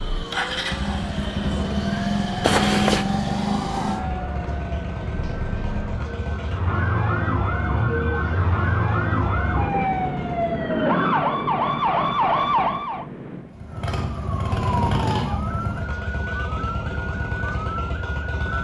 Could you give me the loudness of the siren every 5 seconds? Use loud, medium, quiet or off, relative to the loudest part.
medium, loud, loud, medium.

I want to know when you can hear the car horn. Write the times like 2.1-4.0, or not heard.
2.4-3.0.